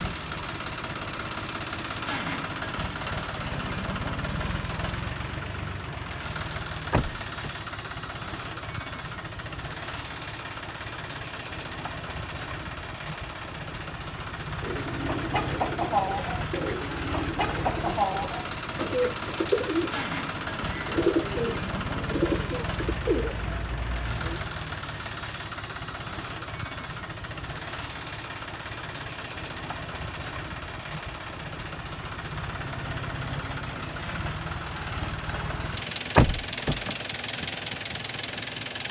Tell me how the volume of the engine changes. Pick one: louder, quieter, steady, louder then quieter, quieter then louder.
steady.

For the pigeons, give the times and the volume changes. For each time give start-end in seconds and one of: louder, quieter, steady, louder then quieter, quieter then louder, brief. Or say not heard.
14.6-24.4 steady.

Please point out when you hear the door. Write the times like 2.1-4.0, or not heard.
6.9-7.5, 36.1-37.0.